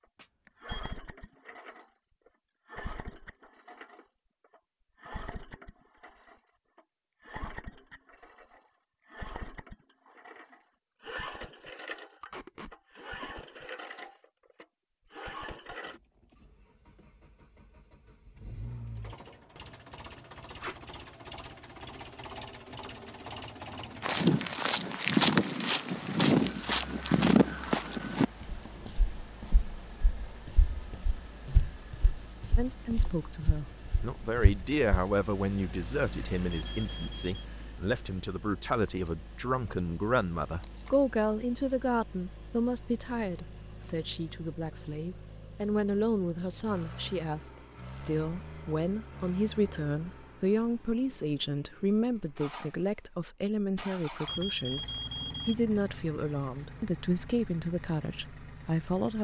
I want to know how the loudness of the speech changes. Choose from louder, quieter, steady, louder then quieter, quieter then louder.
steady.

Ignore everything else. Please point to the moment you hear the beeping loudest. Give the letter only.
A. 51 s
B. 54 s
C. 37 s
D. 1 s
B.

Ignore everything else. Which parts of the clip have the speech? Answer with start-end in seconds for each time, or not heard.
32.5-59.1.